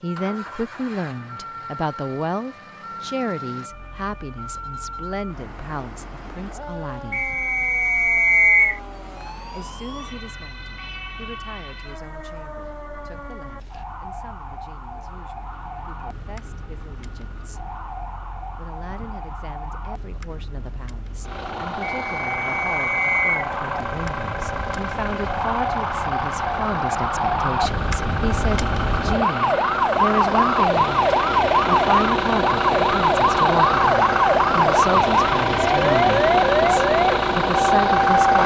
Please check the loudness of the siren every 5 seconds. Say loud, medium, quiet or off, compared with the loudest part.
quiet, quiet, quiet, quiet, quiet, medium, loud, loud.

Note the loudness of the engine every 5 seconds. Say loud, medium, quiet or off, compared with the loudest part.
quiet, quiet, quiet, quiet, medium, medium, loud, loud.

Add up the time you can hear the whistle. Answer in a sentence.
The whistle can be heard for 3 seconds in total.